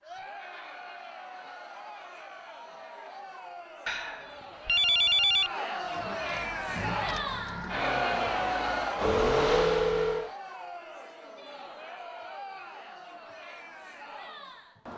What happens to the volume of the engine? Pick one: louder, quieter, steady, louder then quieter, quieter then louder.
louder.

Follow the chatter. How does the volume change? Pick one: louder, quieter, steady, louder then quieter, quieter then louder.
louder then quieter.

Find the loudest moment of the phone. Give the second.
5 s.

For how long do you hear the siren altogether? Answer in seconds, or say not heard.
not heard.